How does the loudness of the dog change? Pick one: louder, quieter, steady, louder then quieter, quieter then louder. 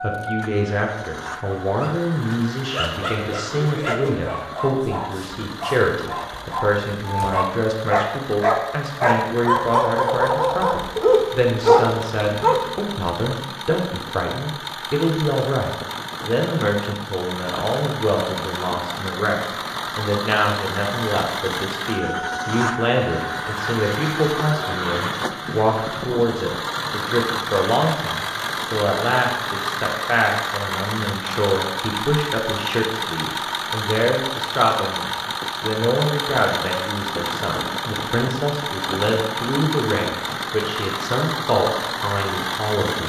louder.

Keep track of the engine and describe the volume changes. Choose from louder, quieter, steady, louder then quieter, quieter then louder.
louder.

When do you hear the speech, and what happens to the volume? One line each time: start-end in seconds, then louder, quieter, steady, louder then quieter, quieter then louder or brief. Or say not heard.
0.0-43.0 steady.